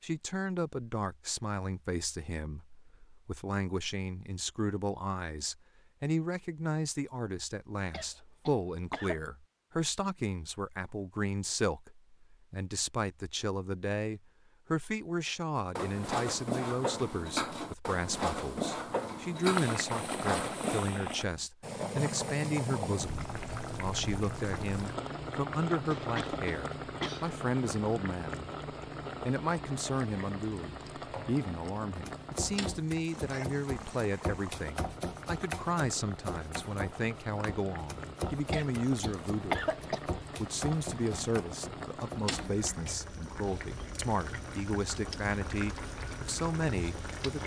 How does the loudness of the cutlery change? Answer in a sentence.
The loudness of the cutlery stays about the same.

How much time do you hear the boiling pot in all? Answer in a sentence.
The boiling pot can be heard for 28 seconds in total.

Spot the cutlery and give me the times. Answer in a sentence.
The cutlery can be heard from 15.6 to 20.9 s.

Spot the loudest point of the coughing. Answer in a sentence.
The volume of the coughing peaks at 40 seconds.